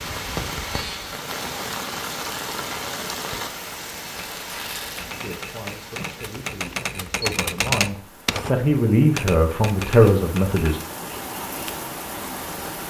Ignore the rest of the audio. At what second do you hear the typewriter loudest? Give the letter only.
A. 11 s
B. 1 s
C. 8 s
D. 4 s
C.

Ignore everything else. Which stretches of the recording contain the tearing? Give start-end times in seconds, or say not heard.
4.2-5.0.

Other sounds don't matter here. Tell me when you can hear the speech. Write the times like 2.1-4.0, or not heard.
5.2-10.8.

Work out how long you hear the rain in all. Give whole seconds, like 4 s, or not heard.
13 s.